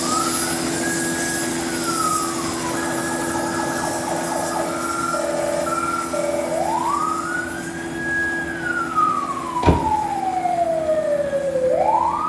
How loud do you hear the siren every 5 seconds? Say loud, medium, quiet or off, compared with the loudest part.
medium, loud, loud.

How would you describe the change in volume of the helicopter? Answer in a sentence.
The volume of the helicopter goes down.